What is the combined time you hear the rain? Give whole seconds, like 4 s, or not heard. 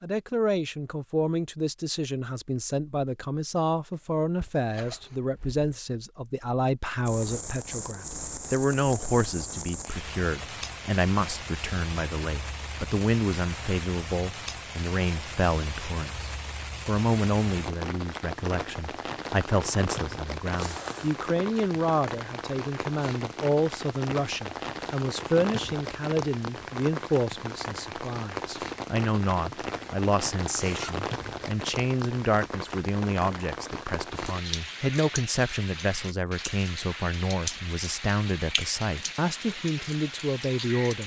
34 s.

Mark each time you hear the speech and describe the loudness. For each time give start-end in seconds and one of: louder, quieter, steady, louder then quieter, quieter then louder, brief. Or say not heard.
0.0-41.0 steady.